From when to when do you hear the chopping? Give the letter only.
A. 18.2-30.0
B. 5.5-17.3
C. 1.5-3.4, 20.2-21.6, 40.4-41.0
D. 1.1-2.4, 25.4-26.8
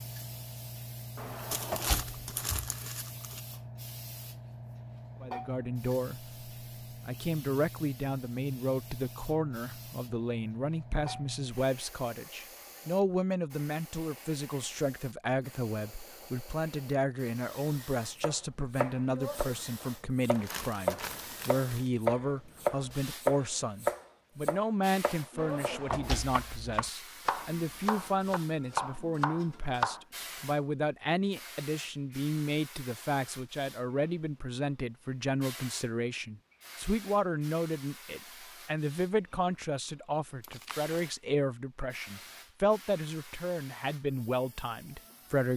A.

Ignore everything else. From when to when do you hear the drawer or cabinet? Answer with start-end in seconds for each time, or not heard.
1.1-2.4, 25.4-26.8.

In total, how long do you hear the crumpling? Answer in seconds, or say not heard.
4 s.